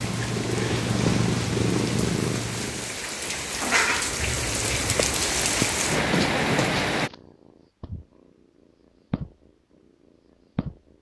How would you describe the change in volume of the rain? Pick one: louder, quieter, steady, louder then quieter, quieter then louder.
louder.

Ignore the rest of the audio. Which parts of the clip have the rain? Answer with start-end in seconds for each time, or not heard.
0.0-7.1.